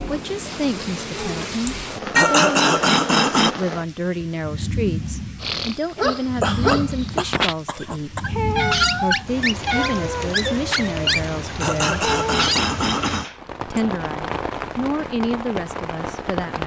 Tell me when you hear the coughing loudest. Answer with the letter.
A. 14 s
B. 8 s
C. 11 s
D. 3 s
D.